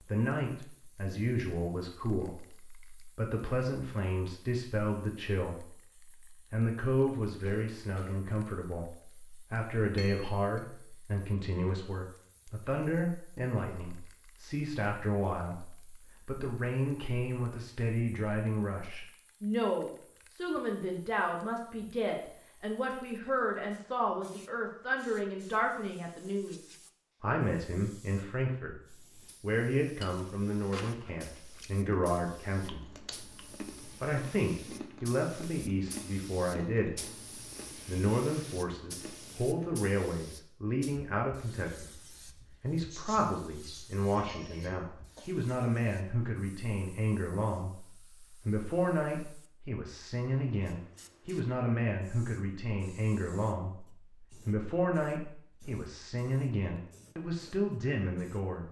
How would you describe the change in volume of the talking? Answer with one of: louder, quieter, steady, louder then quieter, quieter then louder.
steady.